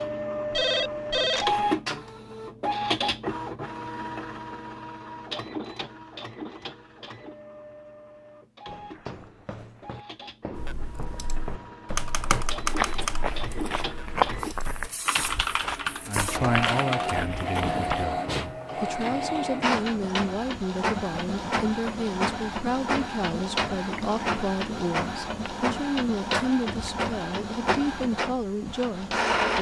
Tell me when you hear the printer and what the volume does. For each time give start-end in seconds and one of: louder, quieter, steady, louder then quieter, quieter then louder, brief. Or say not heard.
0.0-29.5 quieter then louder.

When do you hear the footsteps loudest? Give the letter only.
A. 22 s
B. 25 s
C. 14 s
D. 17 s
C.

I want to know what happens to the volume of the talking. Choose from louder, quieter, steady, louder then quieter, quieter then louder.
steady.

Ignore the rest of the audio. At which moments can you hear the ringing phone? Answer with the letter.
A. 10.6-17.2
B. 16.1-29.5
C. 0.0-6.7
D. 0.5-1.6
D.